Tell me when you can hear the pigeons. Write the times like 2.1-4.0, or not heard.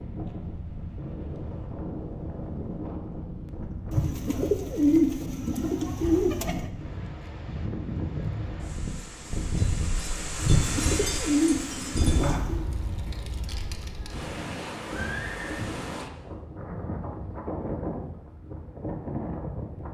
3.9-6.7, 10.4-12.7.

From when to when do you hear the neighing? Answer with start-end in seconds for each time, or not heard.
14.8-15.6.